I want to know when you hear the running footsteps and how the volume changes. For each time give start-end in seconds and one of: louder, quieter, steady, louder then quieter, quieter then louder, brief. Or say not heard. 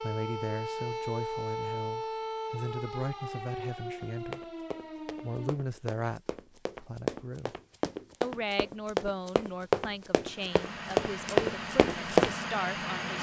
4.0-12.3 louder.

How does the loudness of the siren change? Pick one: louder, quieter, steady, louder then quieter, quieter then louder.
quieter.